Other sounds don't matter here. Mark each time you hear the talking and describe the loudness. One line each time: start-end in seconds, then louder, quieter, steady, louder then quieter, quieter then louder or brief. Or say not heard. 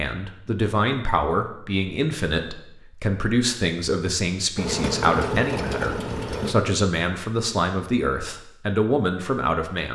0.0-9.9 steady.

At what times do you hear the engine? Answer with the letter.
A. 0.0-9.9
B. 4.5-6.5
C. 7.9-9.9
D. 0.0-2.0
B.